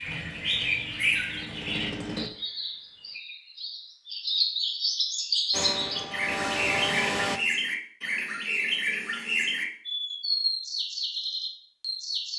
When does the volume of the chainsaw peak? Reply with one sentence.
The loudest moment of the chainsaw is at 7 seconds.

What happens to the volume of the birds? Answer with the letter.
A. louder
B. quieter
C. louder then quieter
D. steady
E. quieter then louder
D.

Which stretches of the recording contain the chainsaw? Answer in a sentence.
The chainsaw can be heard from 0.0 to 2.3 s and from 5.5 to 7.4 s.